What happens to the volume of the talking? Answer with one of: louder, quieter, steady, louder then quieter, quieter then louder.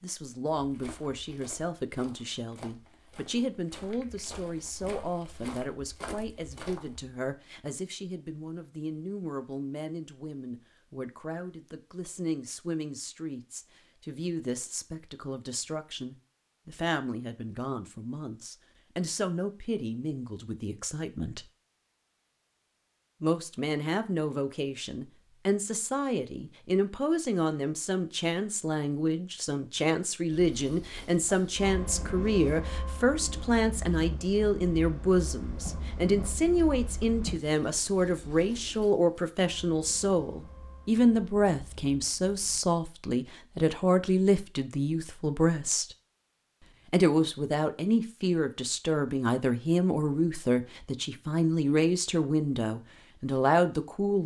louder.